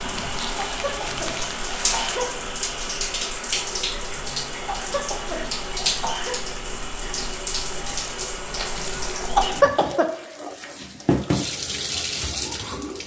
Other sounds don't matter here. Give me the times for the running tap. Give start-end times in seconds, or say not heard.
0.0-13.0.